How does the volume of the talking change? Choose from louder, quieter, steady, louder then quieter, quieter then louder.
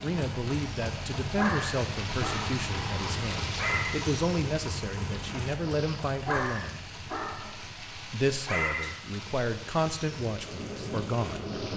steady.